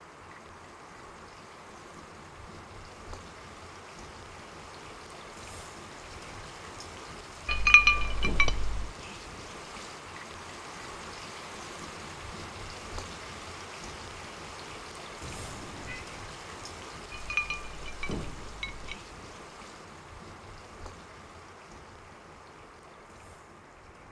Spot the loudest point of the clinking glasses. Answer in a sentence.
The loudest moment of the clinking glasses is at 8 seconds.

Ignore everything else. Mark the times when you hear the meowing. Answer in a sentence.
The meowing can be heard from 15.2 to 16.1 s.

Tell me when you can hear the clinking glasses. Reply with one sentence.
You can hear the clinking glasses from 7.5 to 8.9 s and from 17.1 to 19.0 s.